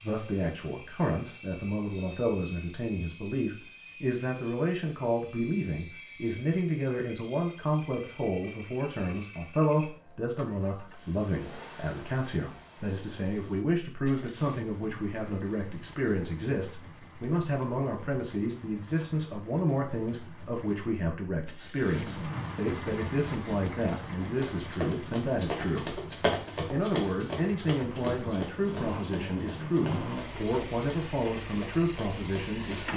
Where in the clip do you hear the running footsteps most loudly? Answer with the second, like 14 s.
26 s.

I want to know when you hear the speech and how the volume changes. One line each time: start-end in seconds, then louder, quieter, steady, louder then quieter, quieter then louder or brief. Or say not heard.
0.0-25.9 steady
26.6-32.9 steady.